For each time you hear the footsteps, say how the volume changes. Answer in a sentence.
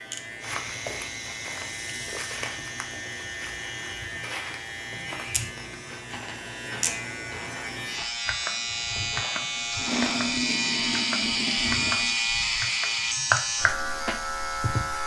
The footsteps can be heard from 0.4 to 10.2 s, getting quieter.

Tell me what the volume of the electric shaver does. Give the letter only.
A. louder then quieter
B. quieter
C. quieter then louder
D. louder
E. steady
D.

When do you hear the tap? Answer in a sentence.
You can hear the tap from 8.8 to 15.0 s.